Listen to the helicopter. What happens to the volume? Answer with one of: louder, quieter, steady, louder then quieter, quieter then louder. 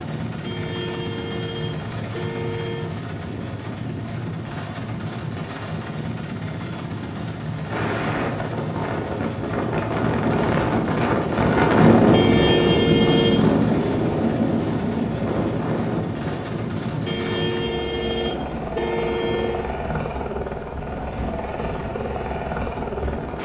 steady.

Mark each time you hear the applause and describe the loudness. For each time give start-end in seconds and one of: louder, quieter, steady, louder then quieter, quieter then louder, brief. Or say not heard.
not heard.